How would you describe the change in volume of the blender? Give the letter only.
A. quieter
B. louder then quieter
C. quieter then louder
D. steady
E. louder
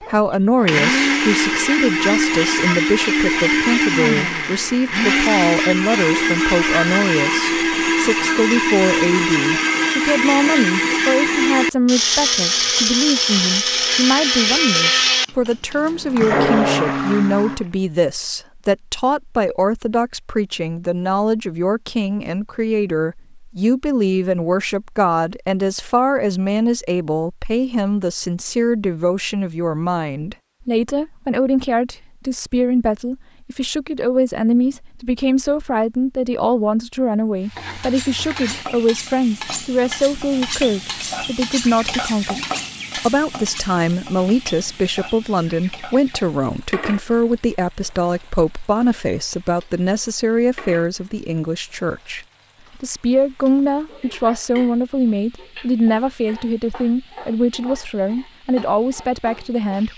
D.